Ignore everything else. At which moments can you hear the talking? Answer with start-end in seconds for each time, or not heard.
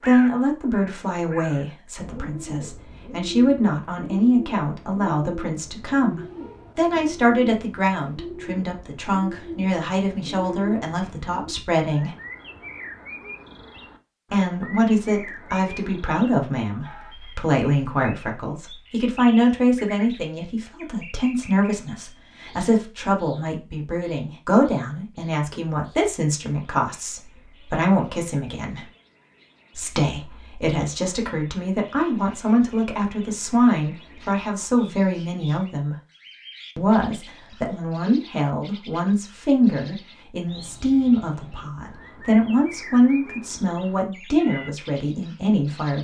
0.1-12.2, 14.3-28.9, 29.8-36.0, 36.8-46.0.